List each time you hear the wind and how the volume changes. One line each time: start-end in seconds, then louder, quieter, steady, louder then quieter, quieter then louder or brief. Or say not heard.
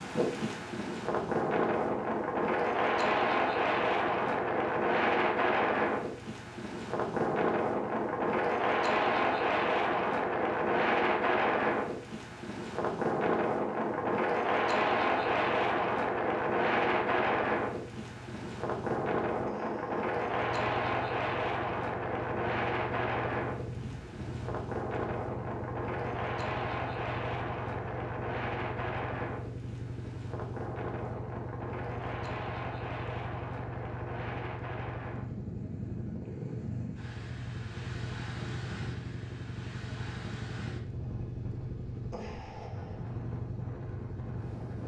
0.0-44.8 quieter.